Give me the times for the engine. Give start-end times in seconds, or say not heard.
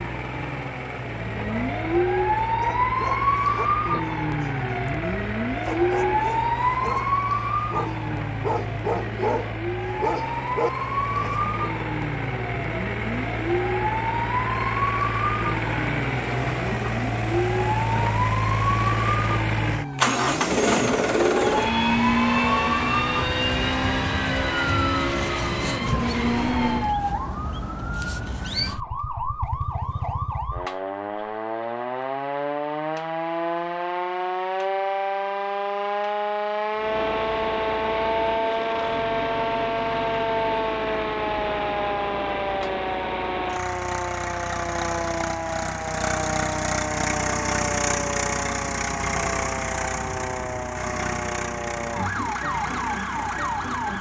0.0-27.0, 36.7-53.9.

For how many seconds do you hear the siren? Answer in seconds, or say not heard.
54 s.